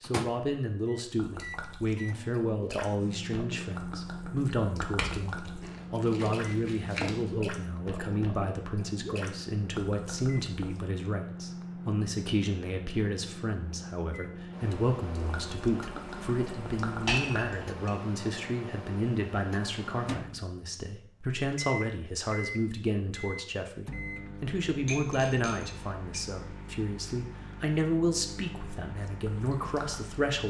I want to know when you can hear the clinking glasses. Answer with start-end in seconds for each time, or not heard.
5.0-7.3, 17.1-17.9, 24.9-26.1.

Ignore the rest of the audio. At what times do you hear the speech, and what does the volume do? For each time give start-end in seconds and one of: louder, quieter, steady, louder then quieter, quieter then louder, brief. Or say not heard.
0.0-30.4 steady.